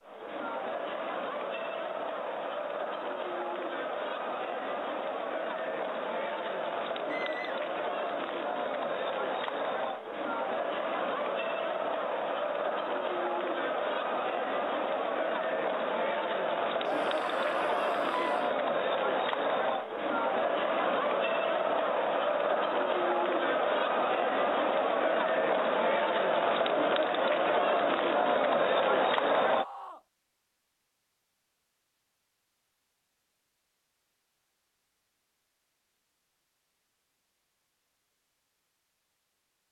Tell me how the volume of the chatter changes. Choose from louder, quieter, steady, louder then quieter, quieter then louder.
louder.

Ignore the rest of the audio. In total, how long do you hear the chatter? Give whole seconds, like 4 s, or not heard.
30 s.